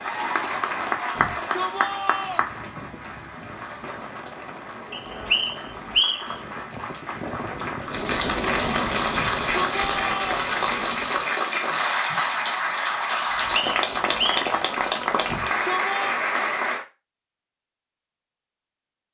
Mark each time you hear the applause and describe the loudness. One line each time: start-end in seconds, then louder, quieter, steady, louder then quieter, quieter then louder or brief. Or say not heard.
0.0-16.9 quieter then louder.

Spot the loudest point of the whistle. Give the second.
6 s.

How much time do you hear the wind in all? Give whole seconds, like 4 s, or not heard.
11 s.